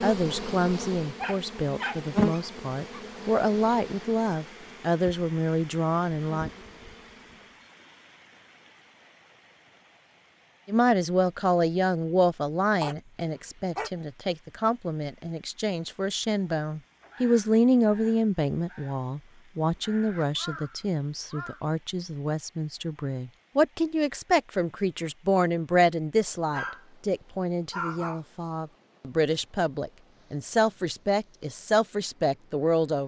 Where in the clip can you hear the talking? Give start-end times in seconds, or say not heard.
0.0-6.5, 10.7-33.0.